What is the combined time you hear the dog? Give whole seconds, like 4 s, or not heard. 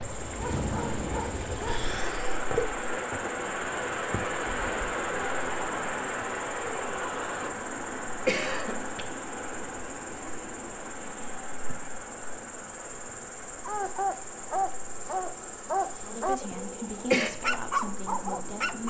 7 s.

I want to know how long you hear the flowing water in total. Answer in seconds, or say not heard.
19 s.